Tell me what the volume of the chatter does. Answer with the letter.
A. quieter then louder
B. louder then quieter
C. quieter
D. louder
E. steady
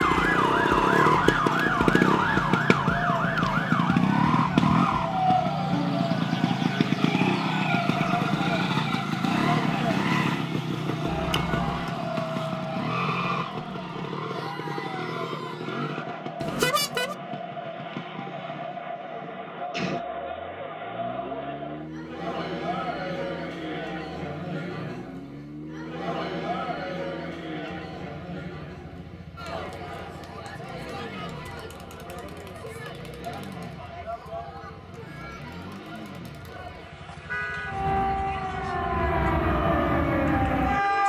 C.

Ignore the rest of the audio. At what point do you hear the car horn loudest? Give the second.
17 s.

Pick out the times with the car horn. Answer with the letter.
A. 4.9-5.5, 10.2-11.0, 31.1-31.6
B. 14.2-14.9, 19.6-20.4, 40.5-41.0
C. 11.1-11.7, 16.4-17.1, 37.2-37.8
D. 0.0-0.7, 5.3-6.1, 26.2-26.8
C.